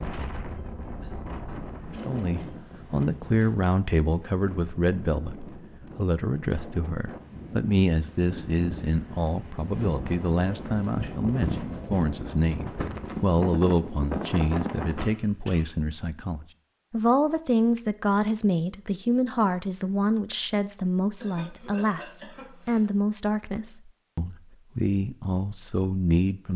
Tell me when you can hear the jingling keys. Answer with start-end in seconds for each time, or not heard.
not heard.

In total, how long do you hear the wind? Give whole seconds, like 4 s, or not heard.
15 s.